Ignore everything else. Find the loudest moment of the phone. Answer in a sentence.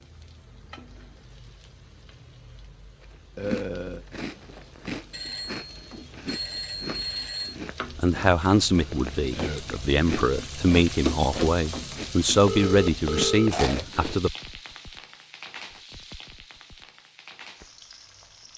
The loudest moment of the phone is at 13 seconds.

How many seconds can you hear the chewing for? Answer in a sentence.
The chewing can be heard for 11 seconds in total.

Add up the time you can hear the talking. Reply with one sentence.
You can hear the talking for 6 seconds altogether.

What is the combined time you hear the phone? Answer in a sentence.
You can hear the phone for 4 seconds altogether.